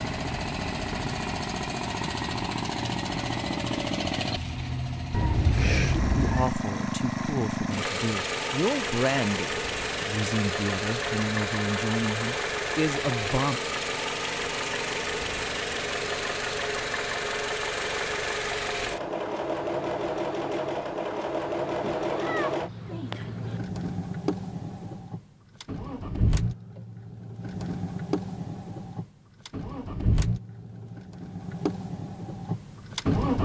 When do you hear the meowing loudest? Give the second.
6 s.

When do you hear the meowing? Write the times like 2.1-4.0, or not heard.
5.1-6.5, 22.1-23.6.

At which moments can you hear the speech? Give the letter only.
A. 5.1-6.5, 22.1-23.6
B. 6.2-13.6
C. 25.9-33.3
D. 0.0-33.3
B.